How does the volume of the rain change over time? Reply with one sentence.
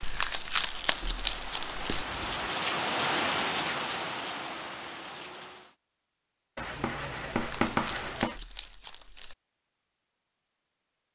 The volume of the rain goes up, then down.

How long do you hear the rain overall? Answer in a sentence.
The rain can be heard for 6 seconds in total.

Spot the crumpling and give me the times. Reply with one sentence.
The crumpling can be heard from 0.0 to 2.0 s and from 7.3 to 9.3 s.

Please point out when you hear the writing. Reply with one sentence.
The writing can be heard from 1.9 to 2.4 s and from 6.5 to 8.4 s.